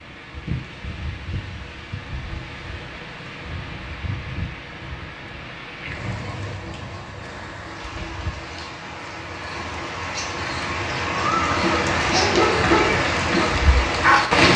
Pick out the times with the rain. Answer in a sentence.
The rain can be heard from 0.0 to 14.5 s.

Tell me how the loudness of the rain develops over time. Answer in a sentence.
The volume of the rain goes up.